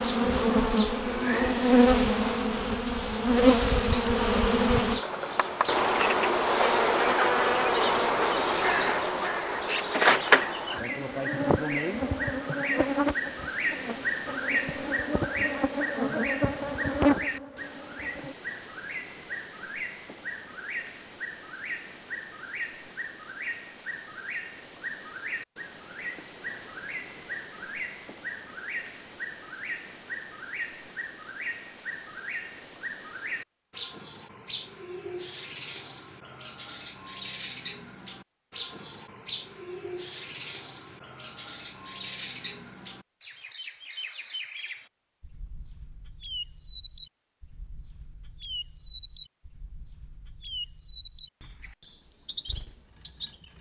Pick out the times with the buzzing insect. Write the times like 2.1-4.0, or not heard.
0.0-18.4.